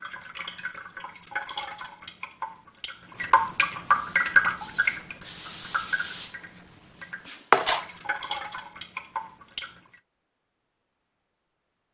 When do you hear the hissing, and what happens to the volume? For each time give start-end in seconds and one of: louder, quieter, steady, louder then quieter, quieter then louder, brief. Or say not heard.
3.9-7.9 louder then quieter.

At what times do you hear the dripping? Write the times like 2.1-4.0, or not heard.
0.0-10.0.